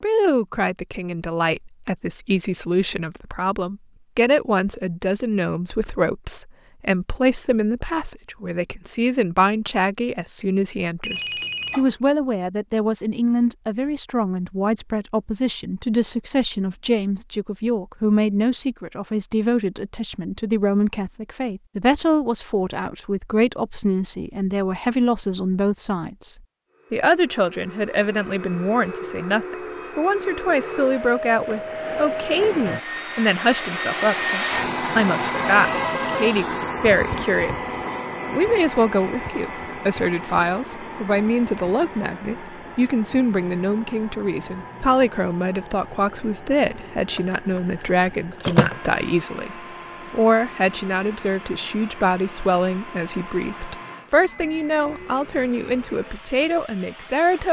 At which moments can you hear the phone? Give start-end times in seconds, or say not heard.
11.0-11.9, 35.3-36.5, 47.1-47.6, 48.4-48.9.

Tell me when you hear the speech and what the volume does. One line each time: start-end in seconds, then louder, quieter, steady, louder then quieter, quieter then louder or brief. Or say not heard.
0.0-37.6 steady
38.2-57.4 steady.